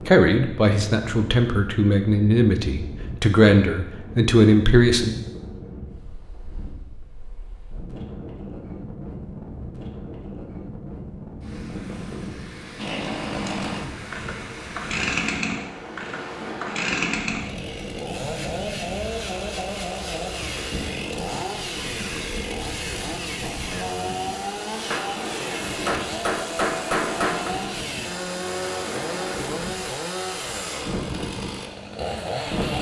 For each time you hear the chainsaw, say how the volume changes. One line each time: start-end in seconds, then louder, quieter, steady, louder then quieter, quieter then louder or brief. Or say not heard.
12.8-32.7 steady.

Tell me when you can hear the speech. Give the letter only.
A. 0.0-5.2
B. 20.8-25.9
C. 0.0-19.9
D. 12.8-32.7
A.